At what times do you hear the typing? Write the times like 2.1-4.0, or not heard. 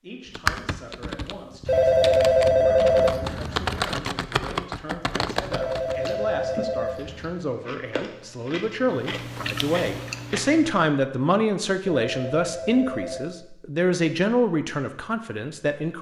0.3-6.2.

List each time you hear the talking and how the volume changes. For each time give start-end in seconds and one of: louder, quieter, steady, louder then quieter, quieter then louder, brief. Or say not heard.
0.0-15.9 louder.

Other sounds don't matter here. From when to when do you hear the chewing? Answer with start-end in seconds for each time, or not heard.
5.2-10.8.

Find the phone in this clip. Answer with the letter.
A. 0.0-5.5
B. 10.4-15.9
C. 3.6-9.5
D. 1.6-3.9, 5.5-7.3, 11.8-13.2
D.